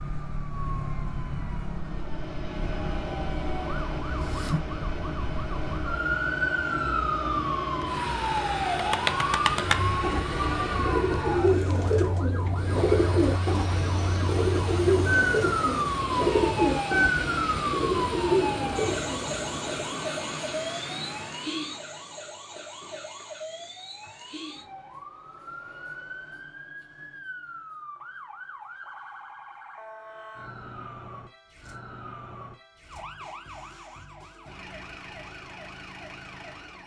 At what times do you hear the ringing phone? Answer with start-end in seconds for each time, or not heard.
not heard.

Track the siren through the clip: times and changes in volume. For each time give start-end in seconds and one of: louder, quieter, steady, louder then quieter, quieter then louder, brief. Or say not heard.
0.0-36.8 quieter.